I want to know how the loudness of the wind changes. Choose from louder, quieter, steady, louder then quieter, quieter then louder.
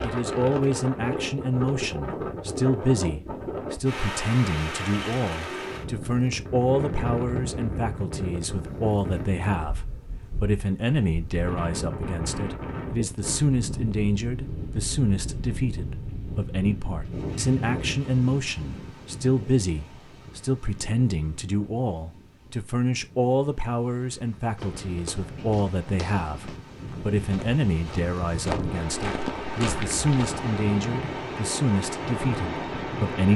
quieter then louder.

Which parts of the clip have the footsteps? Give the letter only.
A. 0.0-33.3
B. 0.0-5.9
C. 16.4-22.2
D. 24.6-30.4
D.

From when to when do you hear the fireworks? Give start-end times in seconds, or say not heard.
not heard.